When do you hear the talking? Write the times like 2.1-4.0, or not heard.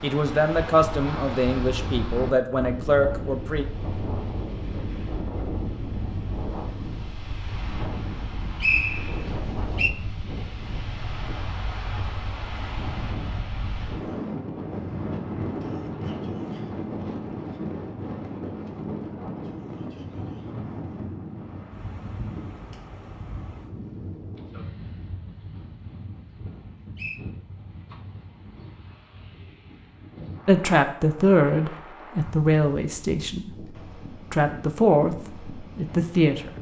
0.0-3.6, 30.4-33.5, 34.3-36.5.